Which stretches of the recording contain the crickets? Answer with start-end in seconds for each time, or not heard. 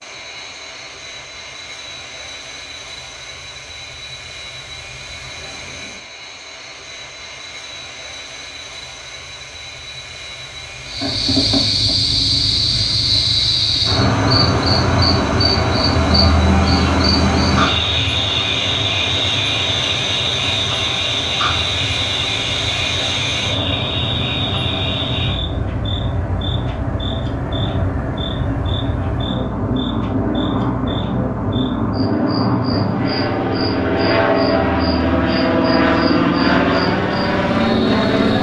10.8-38.3.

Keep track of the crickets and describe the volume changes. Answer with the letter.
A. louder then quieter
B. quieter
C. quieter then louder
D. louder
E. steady
C.